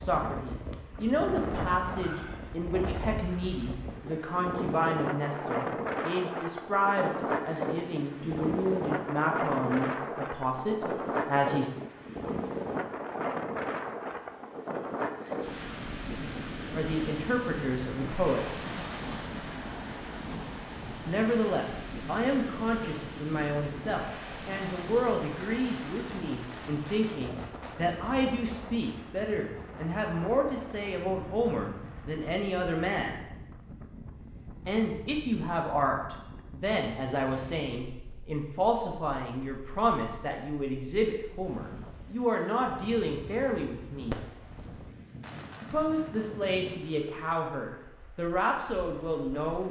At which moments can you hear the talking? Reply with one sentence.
You can hear the talking from 0.0 to 11.7 s, from 16.8 to 18.6 s, from 21.1 to 33.2 s, from 34.6 to 44.2 s and from 45.6 to 49.6 s.